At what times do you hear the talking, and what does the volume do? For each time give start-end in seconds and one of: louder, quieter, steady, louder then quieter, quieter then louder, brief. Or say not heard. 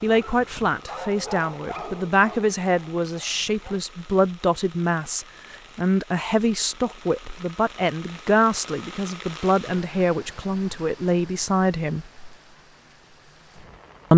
0.0-12.1 steady.